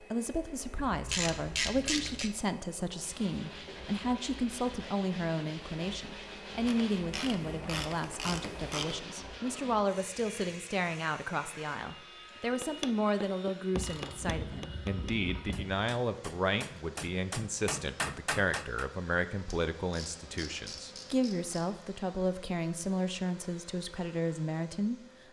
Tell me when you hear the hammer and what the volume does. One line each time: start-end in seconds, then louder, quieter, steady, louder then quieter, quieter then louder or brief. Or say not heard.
12.6-18.9 quieter then louder.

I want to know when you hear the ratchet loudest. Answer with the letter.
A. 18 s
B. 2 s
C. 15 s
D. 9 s
B.